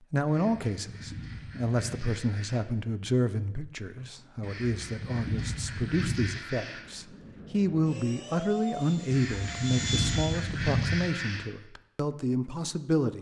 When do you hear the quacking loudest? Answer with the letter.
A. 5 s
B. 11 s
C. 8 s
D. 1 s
B.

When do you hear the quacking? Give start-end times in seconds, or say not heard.
0.2-2.6, 4.4-6.8, 9.1-11.5.